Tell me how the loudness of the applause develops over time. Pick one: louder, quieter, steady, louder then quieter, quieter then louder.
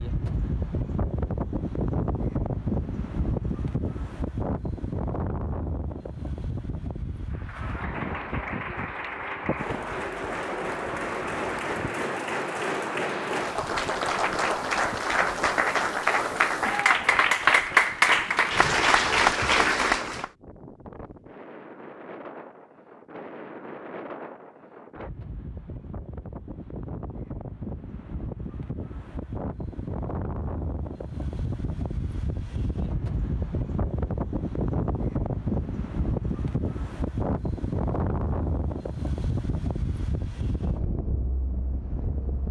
louder.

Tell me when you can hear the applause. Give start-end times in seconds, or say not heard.
7.3-20.3.